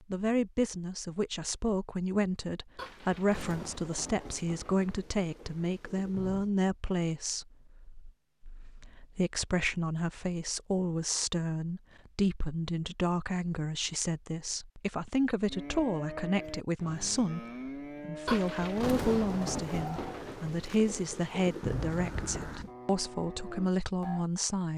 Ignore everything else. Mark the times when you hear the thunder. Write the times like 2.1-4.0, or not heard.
2.8-6.5, 18.2-22.7.